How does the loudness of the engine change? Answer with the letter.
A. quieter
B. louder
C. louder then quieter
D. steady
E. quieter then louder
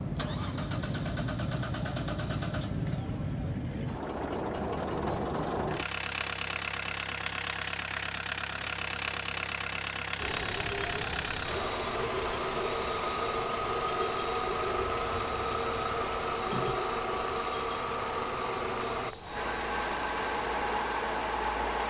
D.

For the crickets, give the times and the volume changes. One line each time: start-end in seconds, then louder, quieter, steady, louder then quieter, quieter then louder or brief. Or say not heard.
10.2-21.8 quieter.